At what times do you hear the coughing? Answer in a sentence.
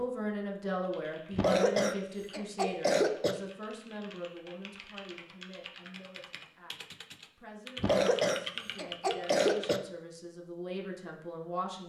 You can hear the coughing from 1.3 to 3.4 s and from 7.8 to 9.8 s.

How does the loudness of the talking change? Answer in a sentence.
The loudness of the talking goes down, then up.